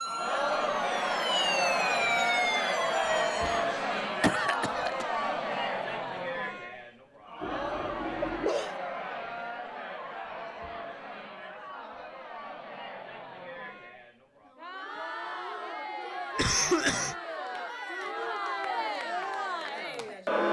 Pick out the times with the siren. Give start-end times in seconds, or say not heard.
0.0-3.6.